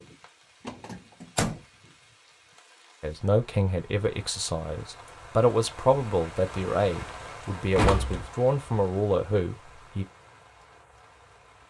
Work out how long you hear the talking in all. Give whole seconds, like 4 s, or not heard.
7 s.